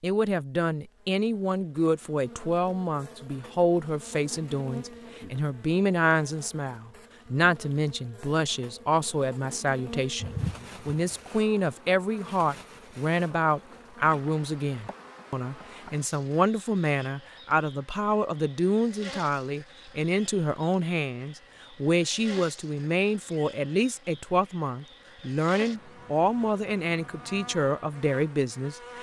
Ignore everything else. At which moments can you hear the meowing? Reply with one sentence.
The meowing can be heard from 10.2 to 11.1 s.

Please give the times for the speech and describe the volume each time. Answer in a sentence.
The speech can be heard from 0.0 to 28.9 s, at a steady volume.